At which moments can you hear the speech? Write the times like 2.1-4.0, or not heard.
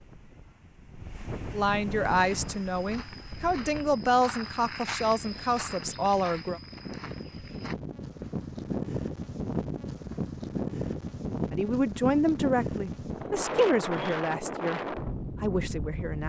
1.5-6.6, 11.5-16.2.